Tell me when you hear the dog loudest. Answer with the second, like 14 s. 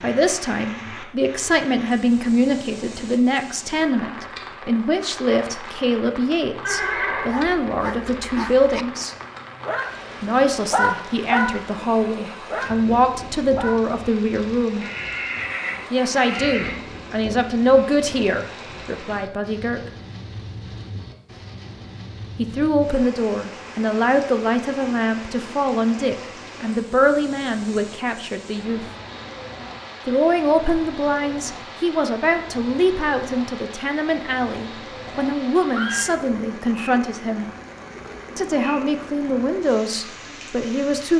11 s.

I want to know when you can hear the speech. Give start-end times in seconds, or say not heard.
0.0-9.2, 10.2-14.8, 15.9-19.9, 22.4-28.9, 30.1-37.5, 38.4-41.1.